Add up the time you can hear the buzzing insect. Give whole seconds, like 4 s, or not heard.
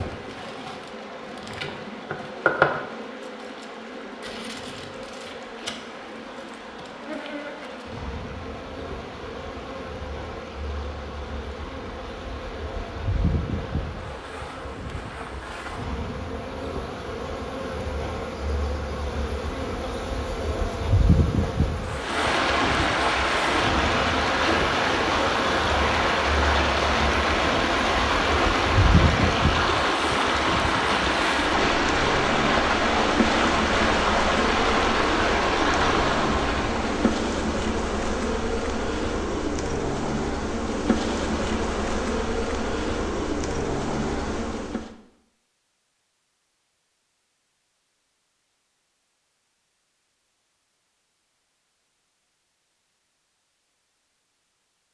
45 s.